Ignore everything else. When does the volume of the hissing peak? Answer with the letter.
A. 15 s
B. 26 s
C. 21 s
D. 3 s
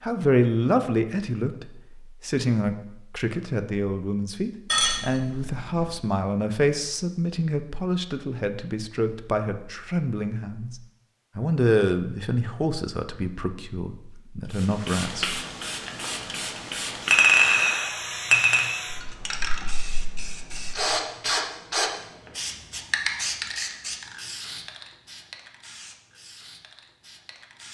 C.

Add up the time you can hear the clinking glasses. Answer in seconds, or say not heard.
3 s.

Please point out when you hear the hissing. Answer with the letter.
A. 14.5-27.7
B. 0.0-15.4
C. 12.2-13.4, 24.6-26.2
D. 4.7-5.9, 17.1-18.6
A.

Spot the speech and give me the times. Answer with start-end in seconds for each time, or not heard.
0.0-15.4.